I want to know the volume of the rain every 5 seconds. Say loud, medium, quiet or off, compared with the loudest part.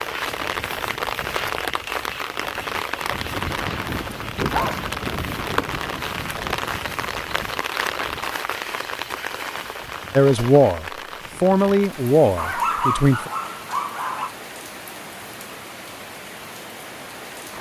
loud, loud, medium, medium.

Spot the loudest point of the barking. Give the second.
13 s.